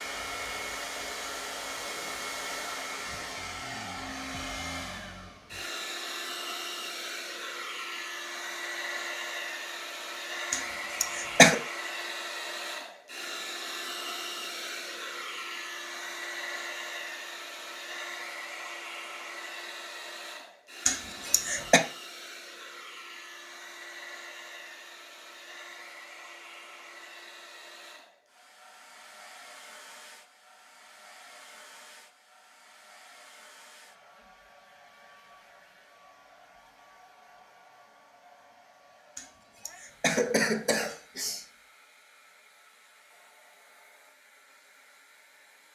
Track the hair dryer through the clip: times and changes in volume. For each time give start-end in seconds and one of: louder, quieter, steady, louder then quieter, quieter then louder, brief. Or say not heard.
0.0-45.7 quieter.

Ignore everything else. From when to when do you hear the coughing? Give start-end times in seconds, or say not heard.
10.5-11.6, 20.9-21.8, 39.1-41.5.